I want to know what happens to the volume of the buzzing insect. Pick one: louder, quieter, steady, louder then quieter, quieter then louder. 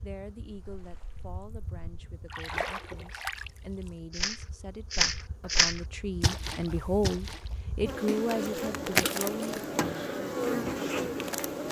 quieter then louder.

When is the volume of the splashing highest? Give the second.
6 s.